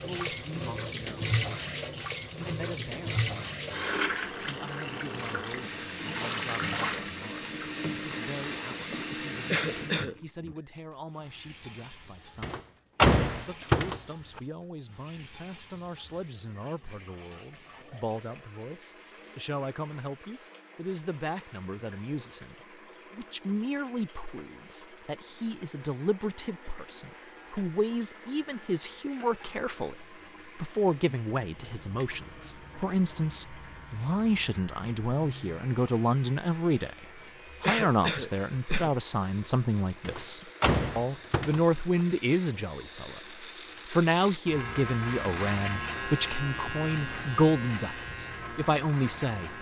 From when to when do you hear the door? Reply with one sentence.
You can hear the door from 12.4 to 14.4 s and from 40.0 to 42.0 s.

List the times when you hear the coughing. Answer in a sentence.
The coughing can be heard from 9.4 to 10.2 s and from 37.6 to 38.9 s.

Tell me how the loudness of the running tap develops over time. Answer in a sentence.
The volume of the running tap goes down.